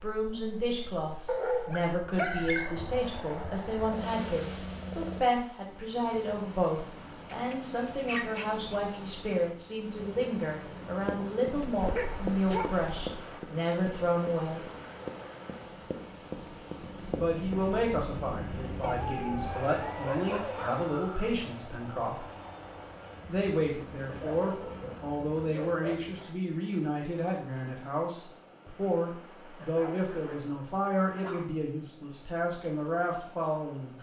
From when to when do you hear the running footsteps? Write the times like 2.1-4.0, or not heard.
11.1-17.6.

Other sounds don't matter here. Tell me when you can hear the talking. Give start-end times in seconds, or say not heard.
0.0-14.7, 17.1-22.2, 23.2-33.9.